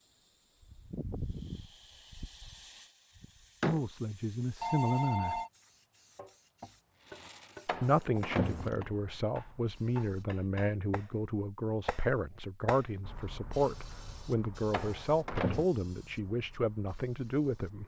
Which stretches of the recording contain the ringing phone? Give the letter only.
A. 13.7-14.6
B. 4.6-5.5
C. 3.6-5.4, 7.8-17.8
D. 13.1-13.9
B.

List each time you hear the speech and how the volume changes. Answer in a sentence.
You can hear the speech briefly from 3.6 to 5.4 s; and from 7.8 to 17.8 s, at a steady volume.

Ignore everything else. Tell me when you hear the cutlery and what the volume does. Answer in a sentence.
You can't hear the cutlery here.